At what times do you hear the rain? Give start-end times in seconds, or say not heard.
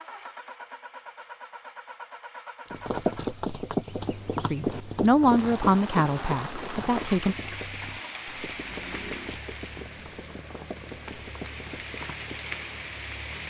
5.2-13.4.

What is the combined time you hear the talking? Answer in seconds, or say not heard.
3 s.